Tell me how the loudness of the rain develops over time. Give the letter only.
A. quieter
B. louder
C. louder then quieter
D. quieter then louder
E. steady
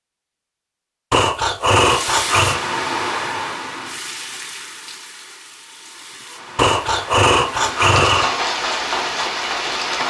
D.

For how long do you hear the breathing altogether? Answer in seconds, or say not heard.
3 s.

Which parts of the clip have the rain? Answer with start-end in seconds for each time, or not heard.
1.8-10.0.